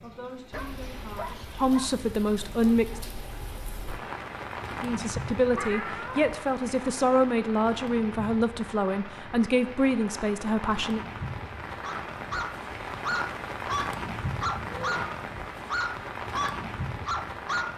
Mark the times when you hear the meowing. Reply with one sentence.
The meowing can be heard from 5.5 to 6.2 s and from 14.3 to 15.1 s.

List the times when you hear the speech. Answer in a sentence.
The speech can be heard from 0.0 to 3.0 s and from 4.8 to 11.1 s.